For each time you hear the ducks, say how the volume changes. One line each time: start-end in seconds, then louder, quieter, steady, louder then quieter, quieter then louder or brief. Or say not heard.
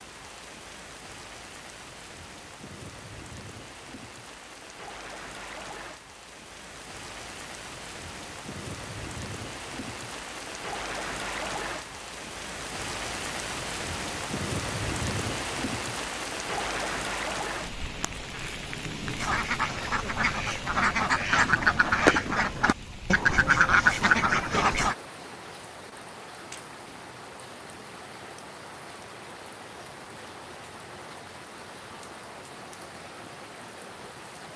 19.1-24.9 louder.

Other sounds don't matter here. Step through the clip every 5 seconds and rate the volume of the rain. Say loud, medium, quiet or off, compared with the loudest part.
medium, medium, loud, loud, medium, medium, medium.